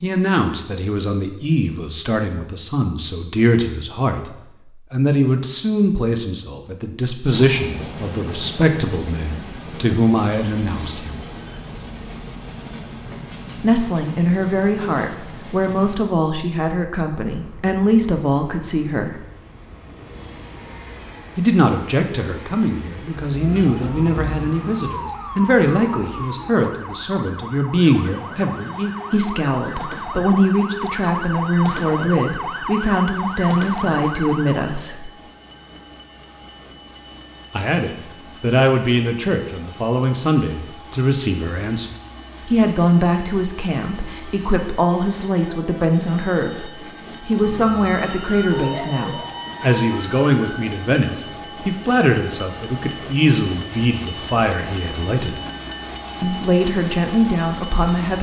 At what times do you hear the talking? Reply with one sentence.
The talking can be heard from 0.0 to 11.2 s, from 13.6 to 19.2 s, from 21.4 to 35.1 s, from 37.5 to 55.4 s and from 56.2 to 58.1 s.